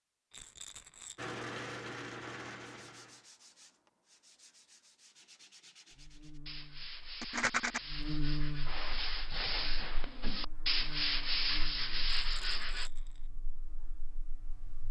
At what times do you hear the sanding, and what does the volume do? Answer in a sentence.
You can hear the sanding from 1.1 to 12.9 s, getting quieter then louder.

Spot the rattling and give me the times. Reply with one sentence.
You can hear the rattling from 0.3 to 1.2 s, from 7.2 to 7.8 s and from 12.1 to 13.2 s.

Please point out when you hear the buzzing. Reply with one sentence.
You can hear the buzzing from 5.9 to 14.8 s.